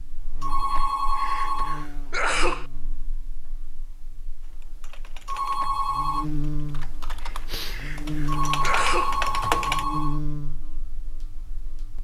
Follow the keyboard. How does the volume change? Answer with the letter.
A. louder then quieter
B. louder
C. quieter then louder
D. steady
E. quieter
C.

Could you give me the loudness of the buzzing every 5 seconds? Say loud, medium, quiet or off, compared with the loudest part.
quiet, loud, loud.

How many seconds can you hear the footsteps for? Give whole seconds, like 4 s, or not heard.
not heard.